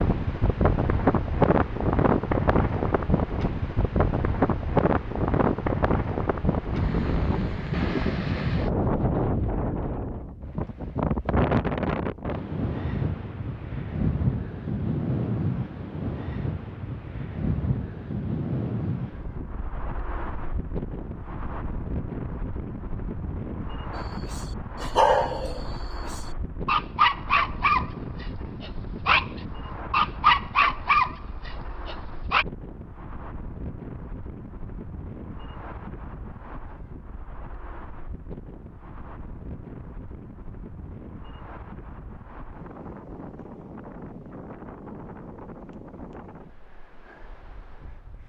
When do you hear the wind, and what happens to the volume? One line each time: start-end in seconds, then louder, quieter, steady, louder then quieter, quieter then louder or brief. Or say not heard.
0.0-48.2 quieter.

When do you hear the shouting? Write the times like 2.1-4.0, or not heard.
not heard.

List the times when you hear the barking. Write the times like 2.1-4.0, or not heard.
23.9-32.5.